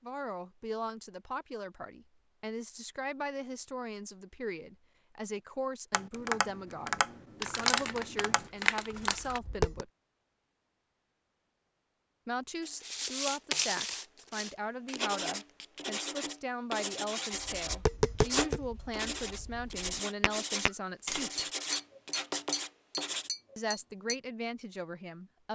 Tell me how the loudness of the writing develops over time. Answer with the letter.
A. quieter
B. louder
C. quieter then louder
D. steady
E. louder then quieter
D.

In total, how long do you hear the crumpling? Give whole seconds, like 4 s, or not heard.
2 s.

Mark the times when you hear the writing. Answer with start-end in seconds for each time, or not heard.
12.6-23.3.